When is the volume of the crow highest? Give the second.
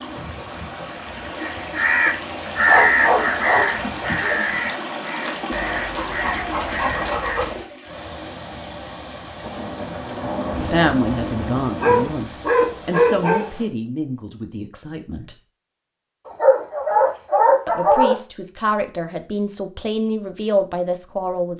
3 s.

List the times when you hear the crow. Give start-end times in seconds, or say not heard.
1.4-7.9.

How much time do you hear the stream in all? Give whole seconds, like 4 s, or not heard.
14 s.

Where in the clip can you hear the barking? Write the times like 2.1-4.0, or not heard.
2.6-3.7, 5.5-7.5, 11.8-13.4, 16.2-18.1.